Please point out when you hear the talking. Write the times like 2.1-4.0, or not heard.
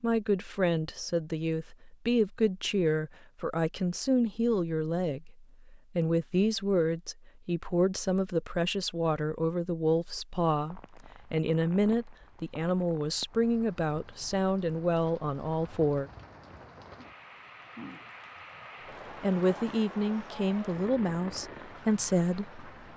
0.0-16.1, 19.2-22.6.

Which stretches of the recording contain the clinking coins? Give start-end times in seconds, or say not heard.
not heard.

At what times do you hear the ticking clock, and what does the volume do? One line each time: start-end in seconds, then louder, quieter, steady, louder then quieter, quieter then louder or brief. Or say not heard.
not heard.